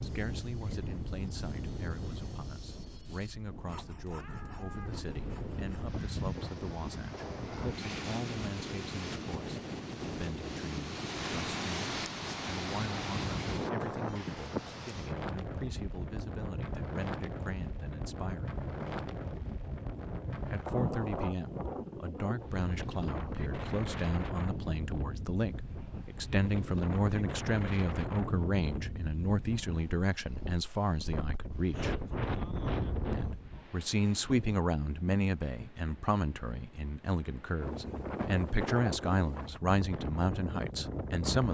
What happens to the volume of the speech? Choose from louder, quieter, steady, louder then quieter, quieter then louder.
louder.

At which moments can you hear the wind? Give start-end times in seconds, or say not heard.
0.0-41.4.